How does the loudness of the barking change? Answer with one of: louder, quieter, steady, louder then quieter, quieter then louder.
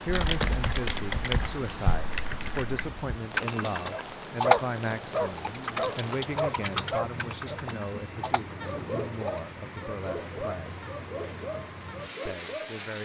quieter.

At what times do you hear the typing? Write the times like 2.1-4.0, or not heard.
0.1-9.4.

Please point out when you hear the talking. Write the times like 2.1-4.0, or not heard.
0.0-10.8, 12.2-13.0.